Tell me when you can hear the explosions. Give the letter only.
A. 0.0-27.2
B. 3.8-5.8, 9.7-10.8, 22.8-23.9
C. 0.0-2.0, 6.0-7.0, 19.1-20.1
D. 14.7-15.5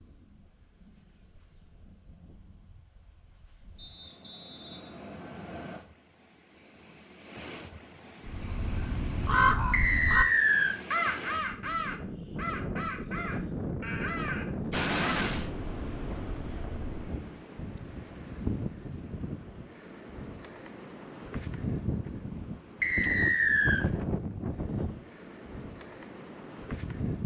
D.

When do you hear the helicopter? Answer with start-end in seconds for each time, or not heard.
not heard.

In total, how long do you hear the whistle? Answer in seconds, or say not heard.
4 s.